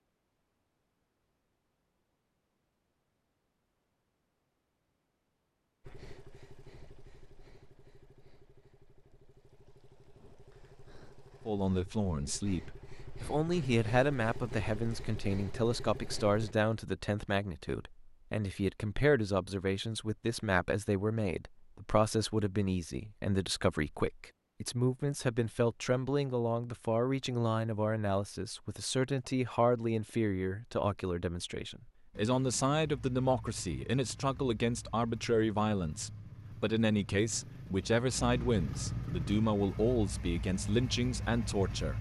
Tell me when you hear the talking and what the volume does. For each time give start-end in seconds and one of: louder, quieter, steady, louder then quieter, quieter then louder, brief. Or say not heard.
11.4-41.9 steady.